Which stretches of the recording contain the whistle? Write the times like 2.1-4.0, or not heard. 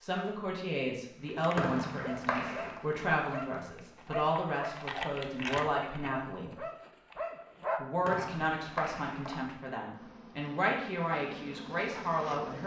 1.6-2.8, 8.0-9.4.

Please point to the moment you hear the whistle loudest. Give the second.
2 s.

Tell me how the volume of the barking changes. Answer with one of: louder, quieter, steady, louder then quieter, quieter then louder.
louder.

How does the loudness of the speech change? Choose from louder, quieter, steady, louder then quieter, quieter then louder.
steady.